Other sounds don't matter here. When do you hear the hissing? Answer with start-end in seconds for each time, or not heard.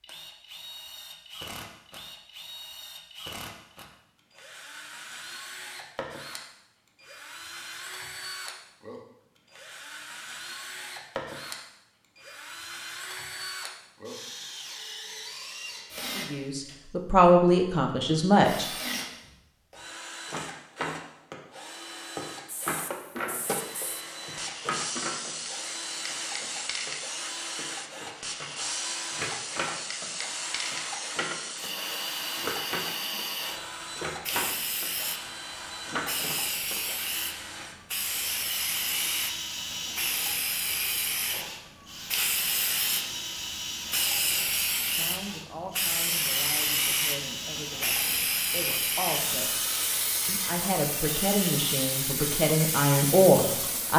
22.4-53.9.